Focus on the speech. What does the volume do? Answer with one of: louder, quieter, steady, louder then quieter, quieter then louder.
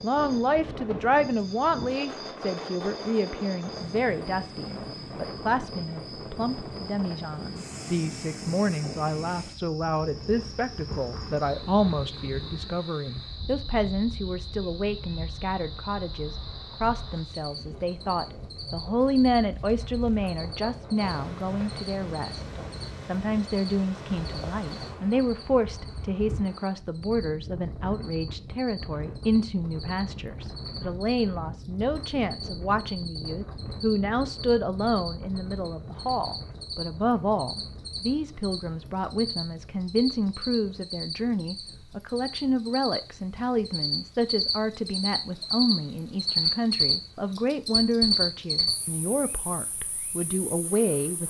steady.